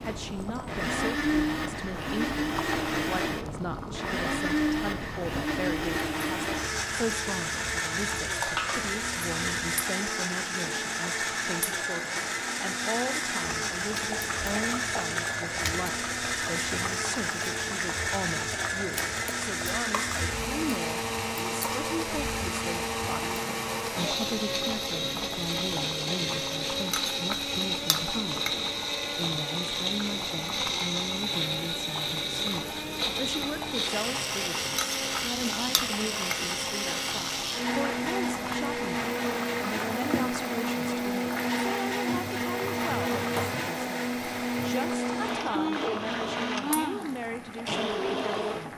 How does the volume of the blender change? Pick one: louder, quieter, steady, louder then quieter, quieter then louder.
steady.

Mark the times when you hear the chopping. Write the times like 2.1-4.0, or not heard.
not heard.